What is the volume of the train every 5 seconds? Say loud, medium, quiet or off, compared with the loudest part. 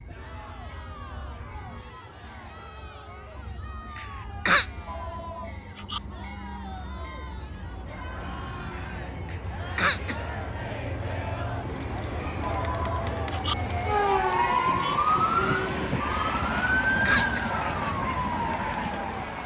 quiet, medium, loud, loud.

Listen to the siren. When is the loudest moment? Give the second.
15 s.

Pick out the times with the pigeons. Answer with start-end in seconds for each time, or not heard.
not heard.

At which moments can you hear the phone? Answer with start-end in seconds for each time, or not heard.
4.8-6.0, 12.4-13.6.